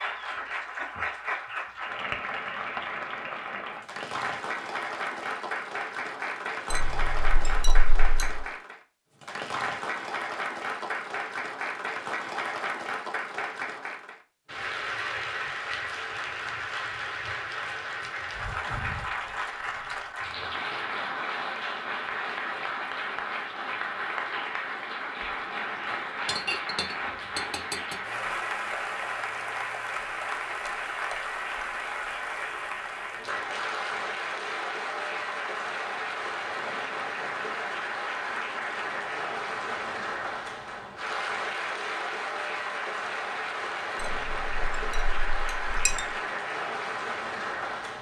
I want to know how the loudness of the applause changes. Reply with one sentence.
The volume of the applause stays about the same.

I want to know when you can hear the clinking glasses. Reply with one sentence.
You can hear the clinking glasses from 6.7 to 8.4 s, from 26.2 to 27.9 s and from 44.0 to 46.1 s.